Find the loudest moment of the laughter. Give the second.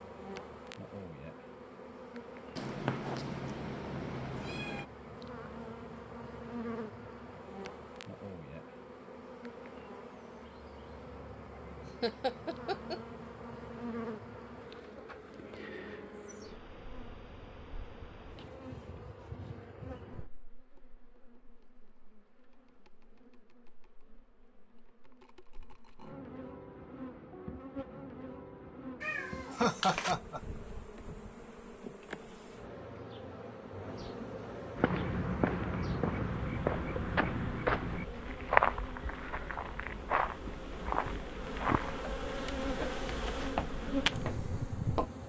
30 s.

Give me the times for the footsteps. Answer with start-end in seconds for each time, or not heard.
34.8-45.1.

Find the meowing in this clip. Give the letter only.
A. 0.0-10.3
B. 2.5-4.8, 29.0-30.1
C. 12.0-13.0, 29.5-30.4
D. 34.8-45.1
B.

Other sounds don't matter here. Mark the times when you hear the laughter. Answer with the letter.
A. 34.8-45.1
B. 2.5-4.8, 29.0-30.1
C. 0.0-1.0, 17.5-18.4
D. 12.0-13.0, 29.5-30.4
D.